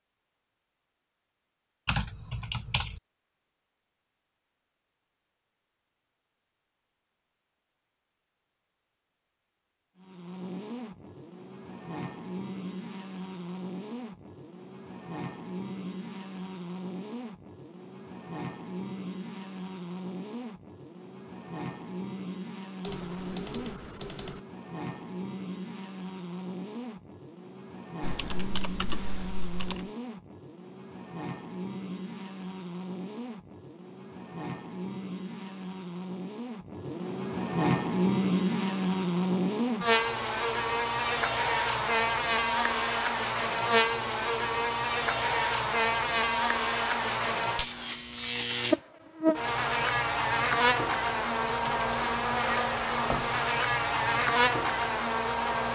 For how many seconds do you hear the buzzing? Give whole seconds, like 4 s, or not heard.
46 s.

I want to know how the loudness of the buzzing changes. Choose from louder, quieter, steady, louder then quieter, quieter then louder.
louder.